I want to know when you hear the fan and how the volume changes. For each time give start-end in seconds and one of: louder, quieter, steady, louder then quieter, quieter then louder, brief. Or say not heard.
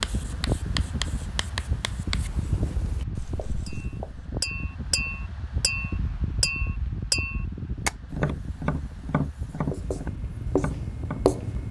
0.0-11.6 quieter.